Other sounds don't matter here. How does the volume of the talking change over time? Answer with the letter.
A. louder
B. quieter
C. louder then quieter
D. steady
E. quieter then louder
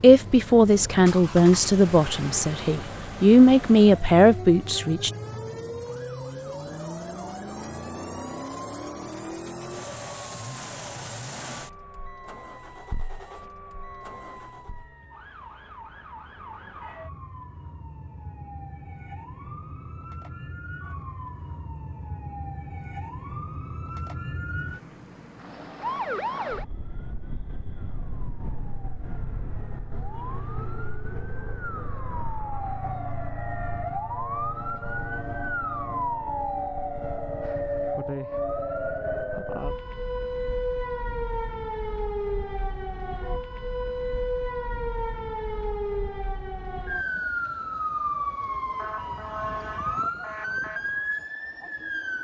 E.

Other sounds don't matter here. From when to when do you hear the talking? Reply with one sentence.
The talking can be heard from 0.0 to 5.1 s.